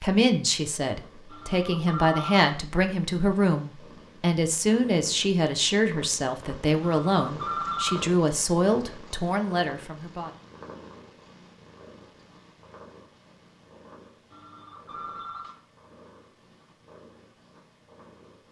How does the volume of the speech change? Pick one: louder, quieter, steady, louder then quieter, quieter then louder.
steady.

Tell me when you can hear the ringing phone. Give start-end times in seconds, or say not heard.
1.3-2.5, 6.8-8.1, 14.3-15.6.